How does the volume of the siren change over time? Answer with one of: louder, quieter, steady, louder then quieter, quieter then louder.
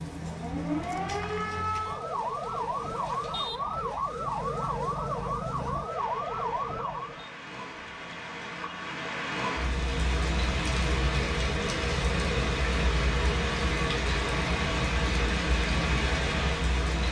steady.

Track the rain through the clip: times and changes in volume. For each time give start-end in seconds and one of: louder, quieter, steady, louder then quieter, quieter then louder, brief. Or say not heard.
0.0-17.0 louder.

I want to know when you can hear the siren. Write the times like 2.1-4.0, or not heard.
0.0-7.3.